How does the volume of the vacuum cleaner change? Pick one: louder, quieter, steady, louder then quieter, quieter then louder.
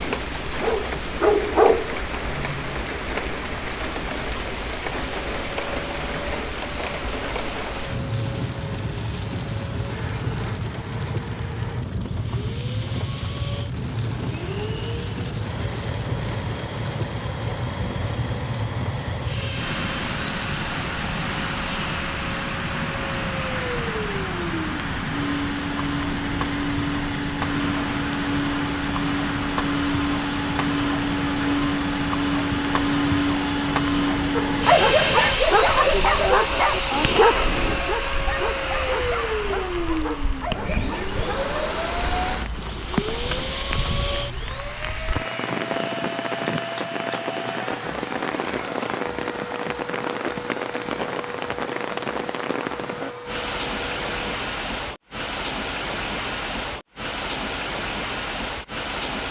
louder then quieter.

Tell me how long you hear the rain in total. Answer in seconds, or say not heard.
59 s.